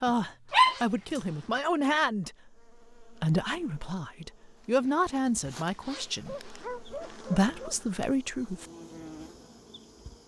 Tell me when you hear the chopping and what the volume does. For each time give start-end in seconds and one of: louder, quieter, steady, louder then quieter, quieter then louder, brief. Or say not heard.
not heard.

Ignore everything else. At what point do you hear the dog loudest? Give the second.
1 s.